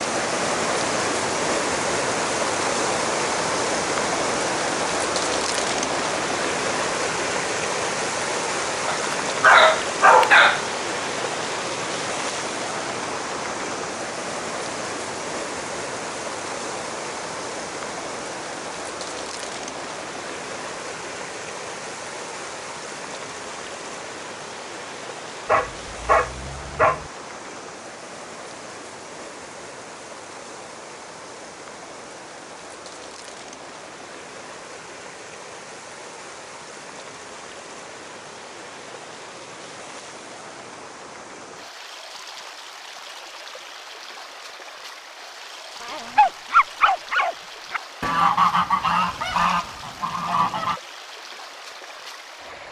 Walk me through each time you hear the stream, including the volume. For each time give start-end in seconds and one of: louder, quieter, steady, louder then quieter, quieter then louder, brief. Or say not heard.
0.0-52.6 quieter.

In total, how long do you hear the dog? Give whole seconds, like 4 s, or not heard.
5 s.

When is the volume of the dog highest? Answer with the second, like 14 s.
10 s.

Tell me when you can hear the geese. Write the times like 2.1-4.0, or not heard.
48.0-50.8.